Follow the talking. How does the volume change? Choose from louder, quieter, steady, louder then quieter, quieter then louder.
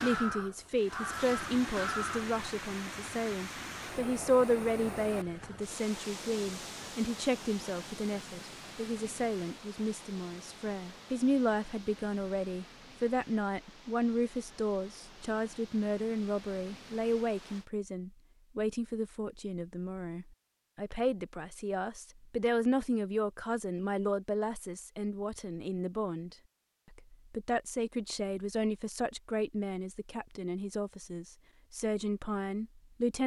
steady.